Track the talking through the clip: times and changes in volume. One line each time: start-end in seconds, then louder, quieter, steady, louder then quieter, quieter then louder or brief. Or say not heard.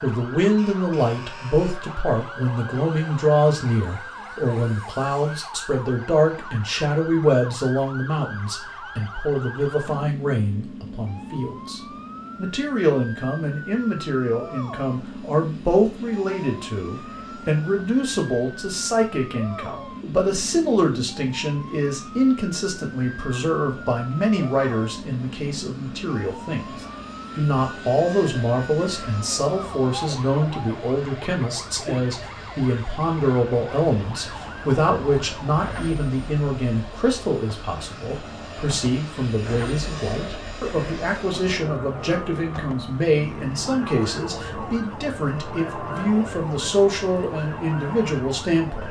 0.0-48.8 steady.